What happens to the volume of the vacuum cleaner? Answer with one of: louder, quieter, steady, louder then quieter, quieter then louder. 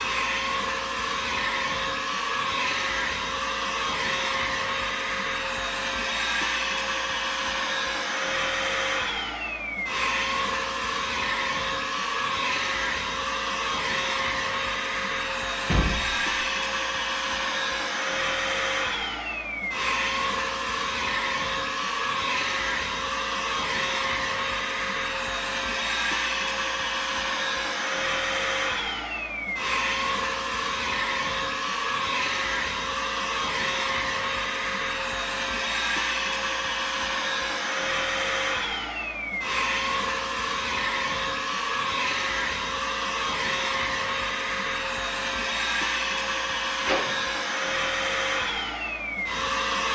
steady.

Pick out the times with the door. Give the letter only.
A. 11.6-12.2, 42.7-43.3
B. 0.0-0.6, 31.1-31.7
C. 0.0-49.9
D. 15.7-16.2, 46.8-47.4
D.